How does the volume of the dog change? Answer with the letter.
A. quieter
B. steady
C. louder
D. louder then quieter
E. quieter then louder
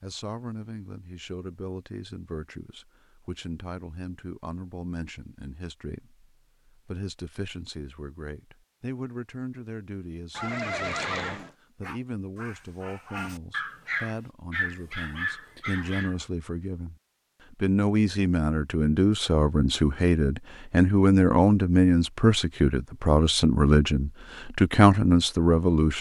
C.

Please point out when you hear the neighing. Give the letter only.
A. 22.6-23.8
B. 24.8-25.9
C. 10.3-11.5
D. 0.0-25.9
C.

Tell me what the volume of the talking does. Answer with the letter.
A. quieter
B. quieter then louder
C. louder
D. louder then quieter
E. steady
C.